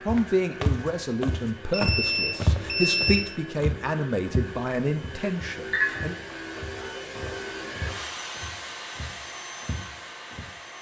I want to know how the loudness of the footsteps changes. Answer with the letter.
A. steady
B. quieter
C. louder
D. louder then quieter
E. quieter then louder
B.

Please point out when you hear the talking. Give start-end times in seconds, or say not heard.
0.1-6.2.